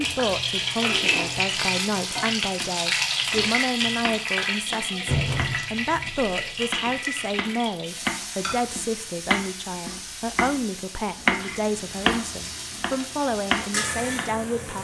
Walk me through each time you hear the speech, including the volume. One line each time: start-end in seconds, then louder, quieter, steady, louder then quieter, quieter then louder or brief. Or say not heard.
0.0-14.7 steady.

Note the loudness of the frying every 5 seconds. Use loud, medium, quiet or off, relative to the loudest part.
loud, medium, medium.